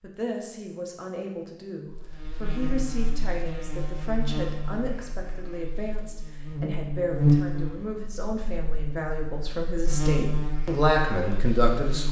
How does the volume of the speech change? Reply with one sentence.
The volume of the speech goes up.